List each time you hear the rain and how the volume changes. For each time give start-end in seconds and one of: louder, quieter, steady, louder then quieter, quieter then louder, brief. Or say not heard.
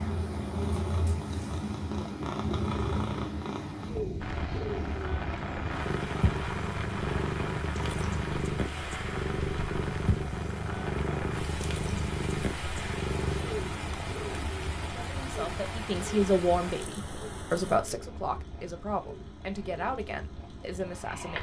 4.2-21.3 quieter.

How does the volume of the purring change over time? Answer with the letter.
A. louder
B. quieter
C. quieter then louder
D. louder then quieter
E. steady
B.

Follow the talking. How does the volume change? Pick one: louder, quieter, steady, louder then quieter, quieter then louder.
quieter.